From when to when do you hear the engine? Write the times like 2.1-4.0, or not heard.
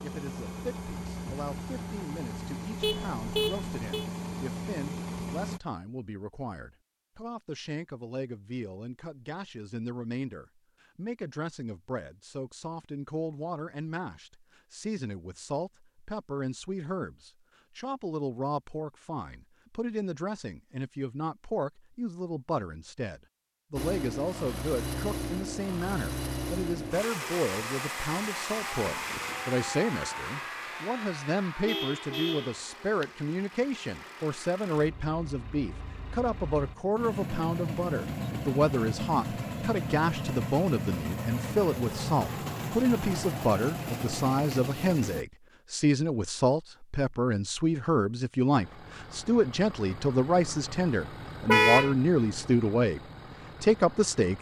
0.0-5.6, 23.8-45.2, 48.5-54.3.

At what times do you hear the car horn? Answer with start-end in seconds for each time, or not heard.
2.8-4.0, 31.6-33.0, 51.5-52.0.